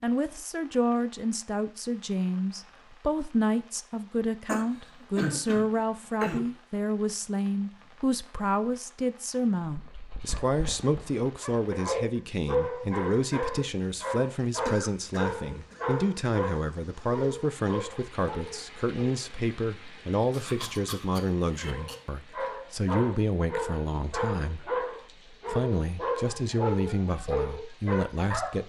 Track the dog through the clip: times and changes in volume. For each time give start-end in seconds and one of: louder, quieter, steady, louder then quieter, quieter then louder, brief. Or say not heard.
9.6-19.2 louder then quieter
21.6-28.6 steady.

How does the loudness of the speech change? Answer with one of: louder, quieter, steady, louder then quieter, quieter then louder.
steady.